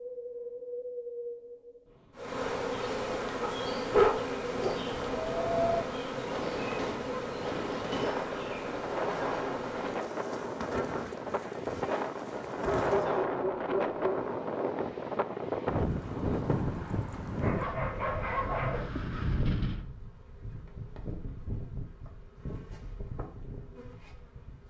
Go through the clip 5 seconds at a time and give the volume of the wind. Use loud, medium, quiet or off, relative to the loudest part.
medium, loud, loud, loud, off.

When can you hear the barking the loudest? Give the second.
4 s.